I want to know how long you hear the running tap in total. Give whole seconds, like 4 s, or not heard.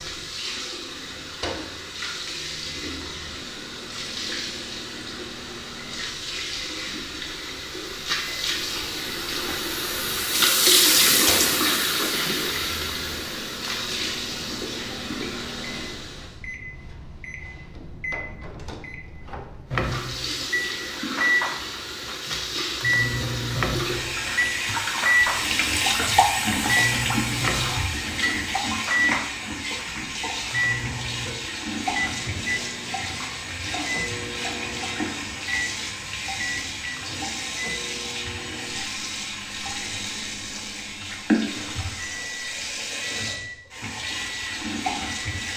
42 s.